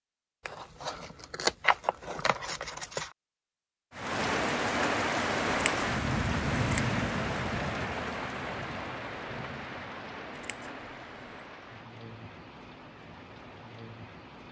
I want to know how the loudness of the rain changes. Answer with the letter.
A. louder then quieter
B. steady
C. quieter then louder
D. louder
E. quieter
E.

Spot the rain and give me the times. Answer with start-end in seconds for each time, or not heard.
3.9-14.4.